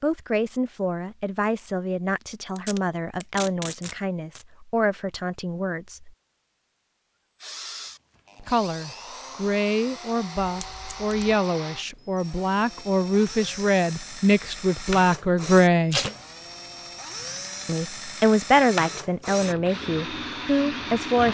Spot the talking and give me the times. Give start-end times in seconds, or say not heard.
0.0-6.2, 8.4-16.0, 17.6-21.2.